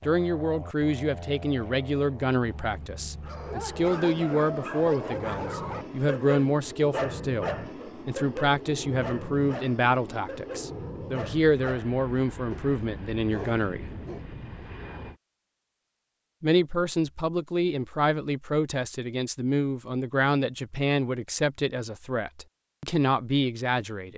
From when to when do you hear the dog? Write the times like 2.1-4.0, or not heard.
3.2-14.2.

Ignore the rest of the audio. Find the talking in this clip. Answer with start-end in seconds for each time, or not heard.
0.1-13.9, 16.4-24.1.